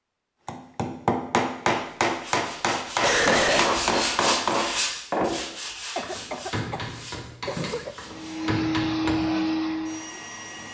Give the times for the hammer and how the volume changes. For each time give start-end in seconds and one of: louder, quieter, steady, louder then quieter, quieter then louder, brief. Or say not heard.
0.5-9.3 quieter.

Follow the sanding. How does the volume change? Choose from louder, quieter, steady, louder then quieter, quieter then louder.
louder then quieter.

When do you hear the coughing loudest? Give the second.
3 s.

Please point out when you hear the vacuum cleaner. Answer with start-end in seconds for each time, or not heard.
8.0-10.6.